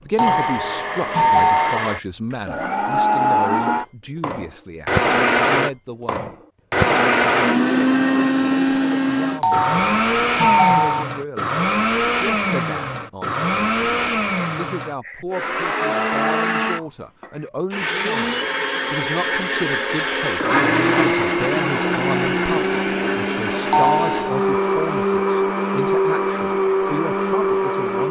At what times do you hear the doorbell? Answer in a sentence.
The doorbell can be heard from 0.1 to 1.8 s, from 9.4 to 11.1 s and from 23.7 to 24.6 s.